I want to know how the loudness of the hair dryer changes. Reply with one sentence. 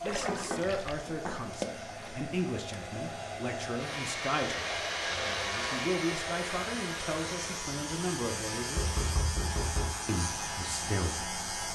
The loudness of the hair dryer goes up, then down.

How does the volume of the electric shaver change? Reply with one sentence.
The loudness of the electric shaver goes up.